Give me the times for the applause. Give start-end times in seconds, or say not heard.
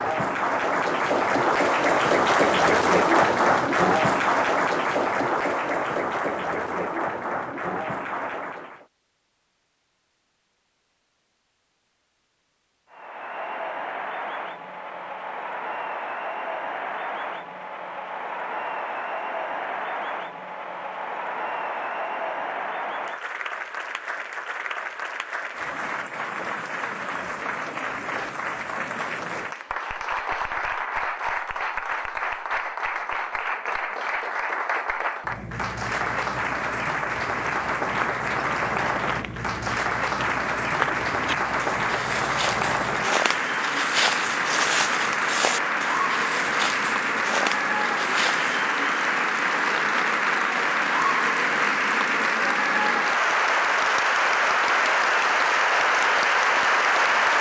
0.0-8.8, 12.9-57.3.